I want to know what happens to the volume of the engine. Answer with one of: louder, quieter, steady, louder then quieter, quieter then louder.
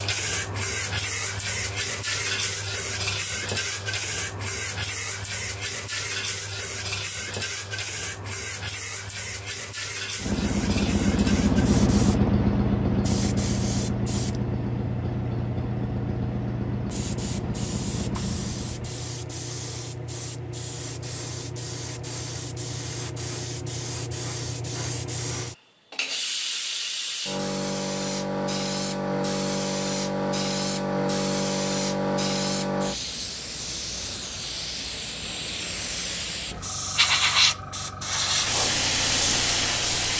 quieter.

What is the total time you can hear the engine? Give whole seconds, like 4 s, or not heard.
9 s.